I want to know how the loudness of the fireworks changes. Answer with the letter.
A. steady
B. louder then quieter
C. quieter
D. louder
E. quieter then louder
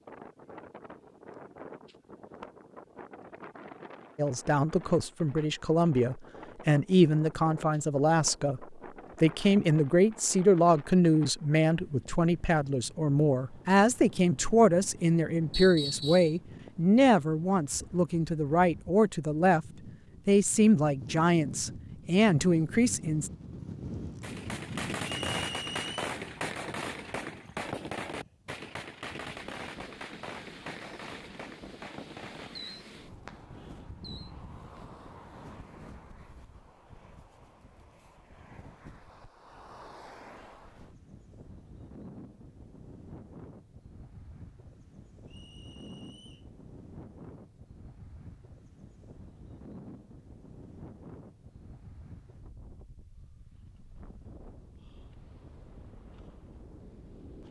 C.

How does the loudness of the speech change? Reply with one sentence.
The loudness of the speech stays about the same.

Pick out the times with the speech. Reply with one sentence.
You can hear the speech from 4.2 to 19.6 s and from 20.2 to 23.3 s.